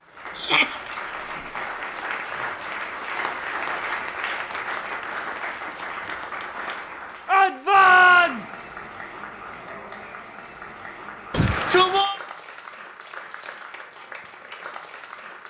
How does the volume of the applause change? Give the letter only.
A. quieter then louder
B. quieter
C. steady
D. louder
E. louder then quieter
B.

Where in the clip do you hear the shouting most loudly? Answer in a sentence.
The volume of the shouting peaks at 8 seconds.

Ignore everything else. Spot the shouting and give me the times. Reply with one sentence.
The shouting can be heard from 0.3 to 0.8 s, from 7.2 to 8.7 s and from 11.3 to 12.2 s.